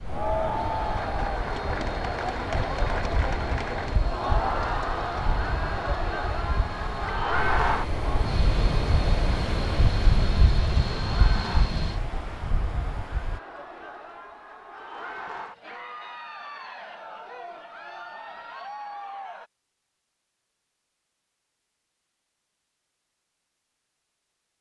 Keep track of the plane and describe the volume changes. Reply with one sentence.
The volume of the plane goes up.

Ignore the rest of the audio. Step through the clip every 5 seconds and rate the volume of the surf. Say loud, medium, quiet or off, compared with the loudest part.
medium, loud, loud, off, off.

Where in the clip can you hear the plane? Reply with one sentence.
You can hear the plane from 0.0 to 12.0 s.